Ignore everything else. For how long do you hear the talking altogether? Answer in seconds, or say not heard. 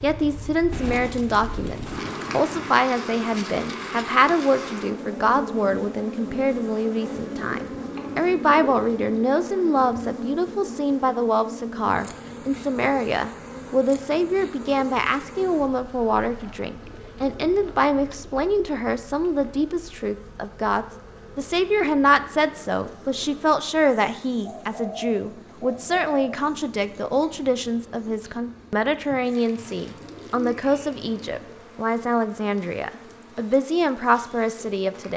35 s.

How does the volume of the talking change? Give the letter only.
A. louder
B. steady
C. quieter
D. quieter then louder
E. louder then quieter
B.